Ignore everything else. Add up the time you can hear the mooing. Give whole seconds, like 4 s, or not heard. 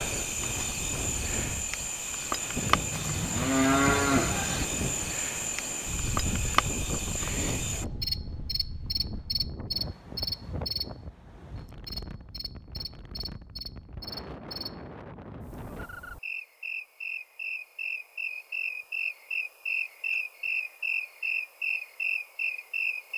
2 s.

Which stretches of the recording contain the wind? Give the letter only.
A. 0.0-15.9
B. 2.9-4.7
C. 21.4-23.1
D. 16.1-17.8
A.